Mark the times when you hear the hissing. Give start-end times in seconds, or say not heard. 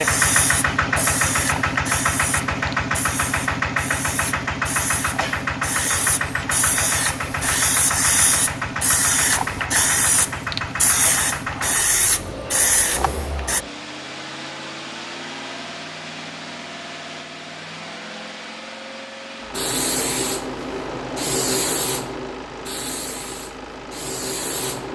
0.0-13.6, 19.5-24.9.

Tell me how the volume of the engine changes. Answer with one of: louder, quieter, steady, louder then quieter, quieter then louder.
quieter.